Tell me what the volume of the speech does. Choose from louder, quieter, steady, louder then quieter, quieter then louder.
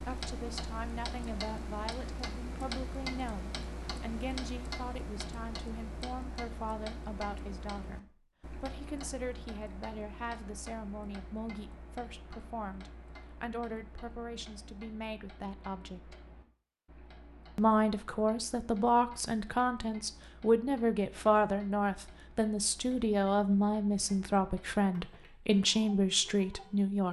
louder.